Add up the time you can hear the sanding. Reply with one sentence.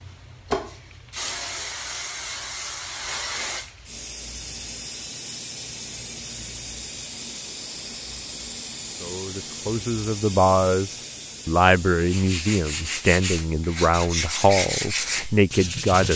You can hear the sanding for 4 seconds altogether.